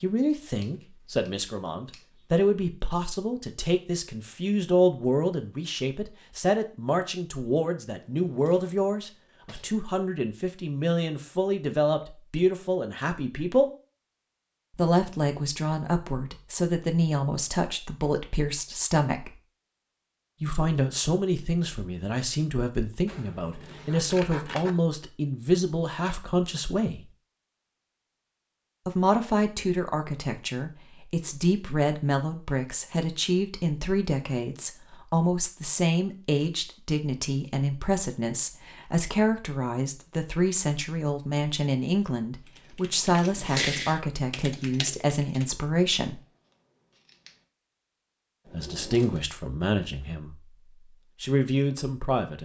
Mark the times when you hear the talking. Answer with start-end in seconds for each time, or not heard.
0.0-13.7, 14.8-19.3, 20.4-27.1, 28.9-46.2, 48.5-50.4, 51.2-52.4.